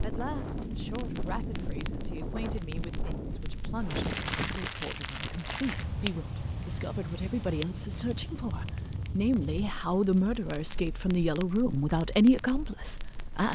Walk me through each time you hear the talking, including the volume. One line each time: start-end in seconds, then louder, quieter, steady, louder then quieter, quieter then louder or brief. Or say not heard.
0.0-13.5 louder.